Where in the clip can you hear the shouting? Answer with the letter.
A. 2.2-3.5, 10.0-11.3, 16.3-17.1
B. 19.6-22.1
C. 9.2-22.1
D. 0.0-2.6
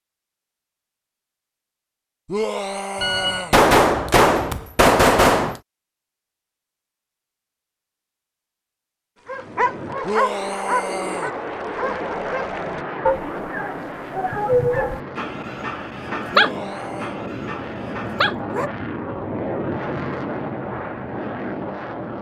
A.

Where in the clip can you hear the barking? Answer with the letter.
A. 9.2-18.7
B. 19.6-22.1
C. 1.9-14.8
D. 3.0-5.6
A.